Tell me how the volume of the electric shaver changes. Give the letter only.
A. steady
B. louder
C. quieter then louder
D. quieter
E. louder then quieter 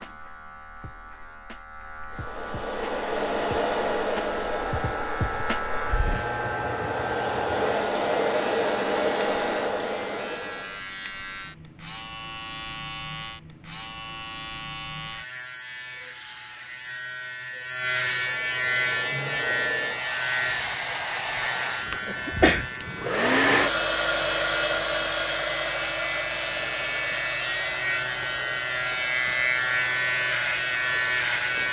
B.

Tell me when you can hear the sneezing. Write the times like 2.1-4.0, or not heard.
22.2-23.1.